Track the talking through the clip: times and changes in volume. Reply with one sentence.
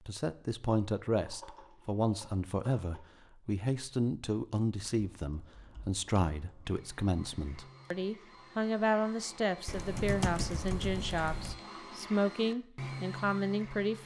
The talking can be heard from 0.1 to 14.0 s, at a steady volume.